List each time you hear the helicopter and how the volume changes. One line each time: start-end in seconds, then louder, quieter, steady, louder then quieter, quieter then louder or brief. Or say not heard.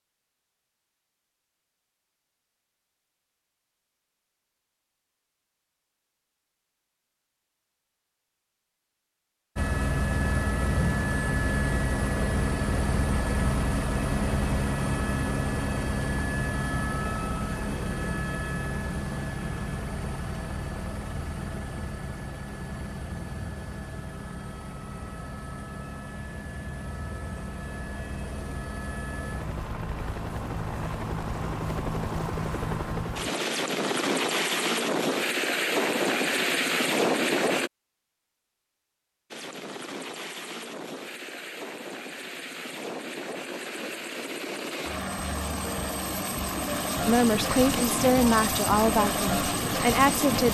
9.6-37.7 quieter then louder
39.3-50.4 louder.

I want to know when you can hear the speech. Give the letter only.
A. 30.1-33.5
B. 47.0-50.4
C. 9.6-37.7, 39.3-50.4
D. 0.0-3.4
B.